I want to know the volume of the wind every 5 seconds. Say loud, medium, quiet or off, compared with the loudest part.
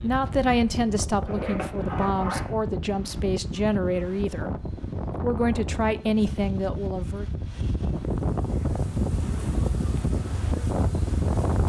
medium, loud, loud.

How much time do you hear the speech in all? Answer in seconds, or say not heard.
7 s.